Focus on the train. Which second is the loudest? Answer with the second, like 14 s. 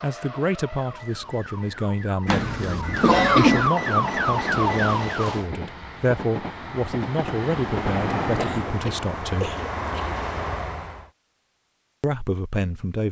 8 s.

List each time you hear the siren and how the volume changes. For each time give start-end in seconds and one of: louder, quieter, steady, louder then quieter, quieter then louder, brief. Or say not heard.
0.0-5.5 louder.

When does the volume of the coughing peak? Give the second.
3 s.